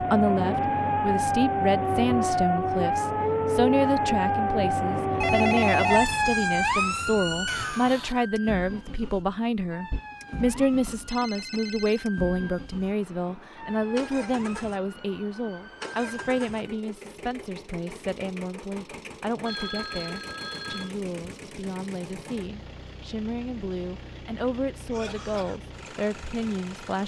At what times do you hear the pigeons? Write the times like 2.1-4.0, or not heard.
not heard.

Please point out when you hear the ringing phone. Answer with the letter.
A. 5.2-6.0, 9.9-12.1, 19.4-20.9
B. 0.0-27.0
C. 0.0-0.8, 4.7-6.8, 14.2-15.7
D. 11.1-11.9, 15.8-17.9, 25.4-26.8
A.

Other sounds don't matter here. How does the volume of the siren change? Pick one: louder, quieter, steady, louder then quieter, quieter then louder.
quieter.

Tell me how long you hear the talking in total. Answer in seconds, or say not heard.
27 s.